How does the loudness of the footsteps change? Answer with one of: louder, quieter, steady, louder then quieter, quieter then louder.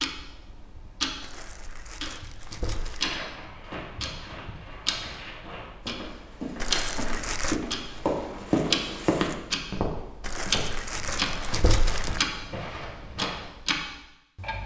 louder then quieter.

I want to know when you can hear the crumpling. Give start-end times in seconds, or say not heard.
1.2-3.2, 6.6-7.6, 10.2-12.2.